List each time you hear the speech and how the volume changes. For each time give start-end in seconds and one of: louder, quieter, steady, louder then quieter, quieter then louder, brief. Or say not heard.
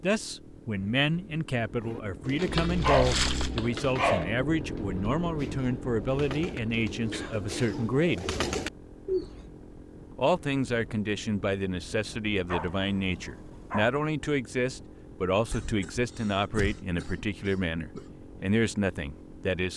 0.0-8.3 steady
10.2-19.7 steady.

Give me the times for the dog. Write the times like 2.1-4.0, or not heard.
2.4-4.3, 12.4-13.9.